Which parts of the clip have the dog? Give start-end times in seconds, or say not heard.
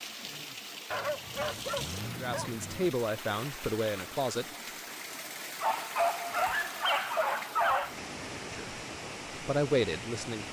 0.9-2.9, 5.6-8.0.